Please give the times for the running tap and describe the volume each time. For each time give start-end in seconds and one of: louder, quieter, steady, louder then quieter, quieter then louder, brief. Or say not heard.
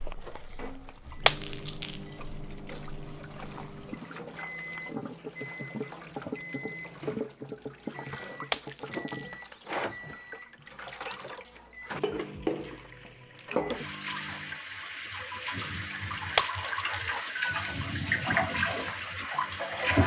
0.0-20.0 louder.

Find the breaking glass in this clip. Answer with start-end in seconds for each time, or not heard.
1.2-1.9, 8.5-9.2, 16.4-17.0.